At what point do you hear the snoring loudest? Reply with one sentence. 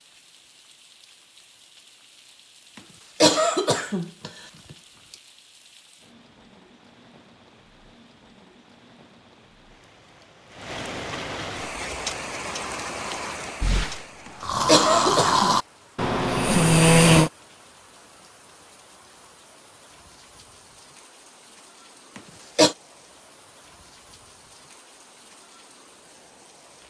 The volume of the snoring peaks at 17 seconds.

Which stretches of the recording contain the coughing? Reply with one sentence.
The coughing can be heard from 3.2 to 4.3 s, from 14.7 to 15.6 s and from 22.1 to 22.8 s.